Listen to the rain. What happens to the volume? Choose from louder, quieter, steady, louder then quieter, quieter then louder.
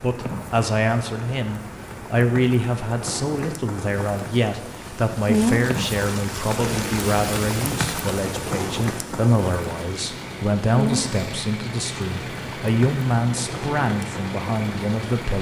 louder then quieter.